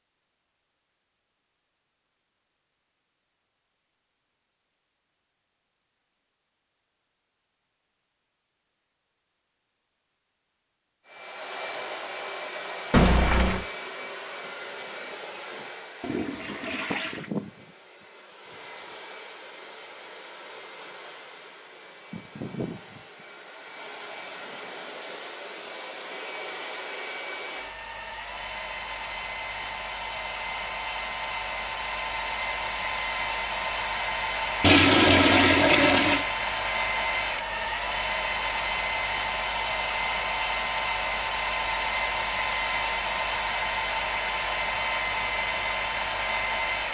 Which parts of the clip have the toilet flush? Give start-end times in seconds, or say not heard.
12.9-13.7, 16.0-17.3, 34.6-36.2.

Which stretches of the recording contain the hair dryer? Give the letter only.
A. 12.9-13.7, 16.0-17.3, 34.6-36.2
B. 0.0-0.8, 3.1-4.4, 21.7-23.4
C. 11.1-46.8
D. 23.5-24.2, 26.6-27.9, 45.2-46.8
C.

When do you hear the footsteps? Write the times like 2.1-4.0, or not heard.
not heard.